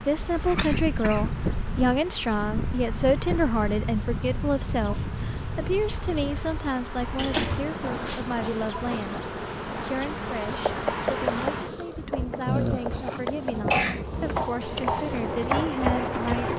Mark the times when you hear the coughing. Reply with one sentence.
The coughing can be heard from 0.1 to 1.3 s, from 7.2 to 8.6 s and from 13.2 to 14.8 s.